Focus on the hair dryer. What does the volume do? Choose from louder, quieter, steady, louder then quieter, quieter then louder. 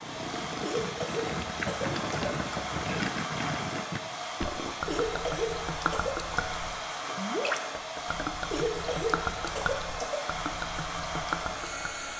steady.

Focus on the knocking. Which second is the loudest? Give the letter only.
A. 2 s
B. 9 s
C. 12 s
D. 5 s
A.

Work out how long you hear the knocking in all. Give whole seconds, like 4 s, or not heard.
2 s.